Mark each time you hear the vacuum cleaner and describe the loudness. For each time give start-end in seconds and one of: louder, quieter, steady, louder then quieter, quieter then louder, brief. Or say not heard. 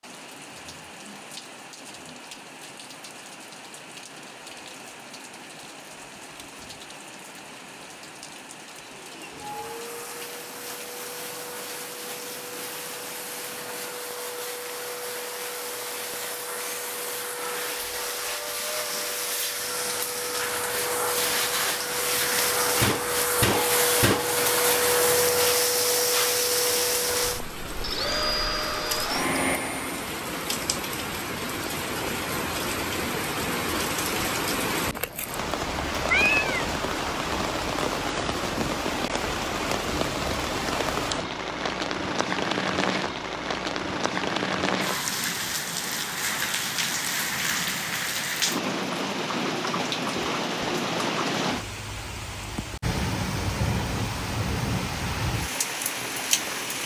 8.9-30.1 louder.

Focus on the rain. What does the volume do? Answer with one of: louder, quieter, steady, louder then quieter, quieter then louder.
louder.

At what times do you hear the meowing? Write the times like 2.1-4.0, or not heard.
36.0-36.6.